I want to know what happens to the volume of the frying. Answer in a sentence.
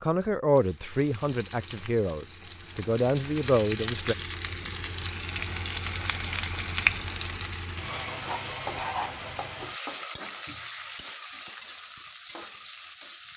The loudness of the frying goes up, then down.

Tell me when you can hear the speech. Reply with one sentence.
You can hear the speech from 0.0 to 4.2 s.